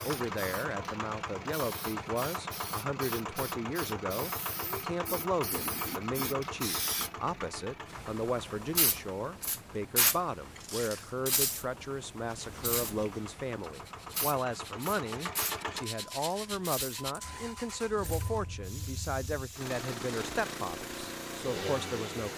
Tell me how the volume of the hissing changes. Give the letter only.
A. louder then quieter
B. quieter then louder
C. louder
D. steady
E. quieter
A.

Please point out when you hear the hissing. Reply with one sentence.
The hissing can be heard from 0.0 to 22.3 s.